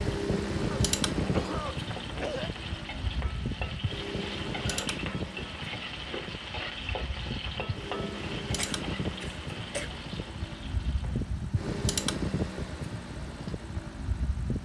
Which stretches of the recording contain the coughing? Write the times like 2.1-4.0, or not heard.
0.7-2.5, 8.6-9.9.